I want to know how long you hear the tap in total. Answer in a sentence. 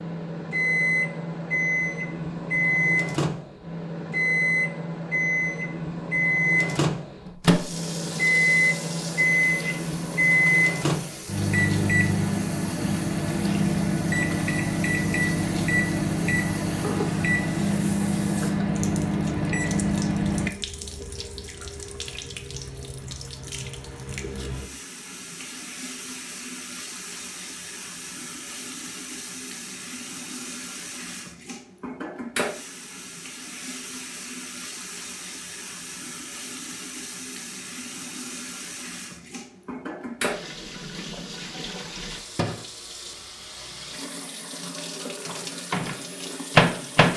You can hear the tap for 40 seconds altogether.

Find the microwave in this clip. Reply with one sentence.
You can hear the microwave from 0.0 to 20.5 s and from 45.2 to 47.1 s.